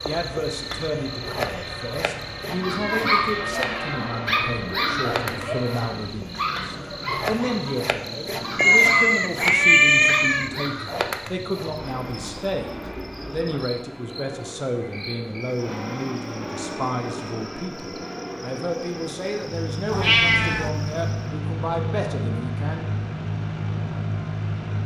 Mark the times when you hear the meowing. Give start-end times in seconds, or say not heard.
2.8-4.0, 8.6-10.5, 19.9-20.7.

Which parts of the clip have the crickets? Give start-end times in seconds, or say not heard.
0.0-21.4.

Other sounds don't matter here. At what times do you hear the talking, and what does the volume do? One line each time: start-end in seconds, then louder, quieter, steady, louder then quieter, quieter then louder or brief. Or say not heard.
0.0-22.9 steady.